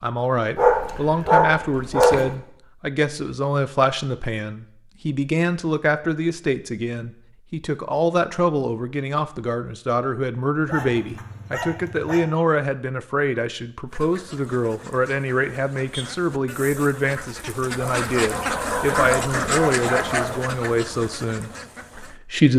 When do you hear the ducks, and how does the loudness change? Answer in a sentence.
You can hear the ducks from 13.8 to 22.2 s, getting louder then quieter.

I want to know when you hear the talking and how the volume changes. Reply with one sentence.
You can hear the talking from 0.0 to 22.5 s, at a steady volume.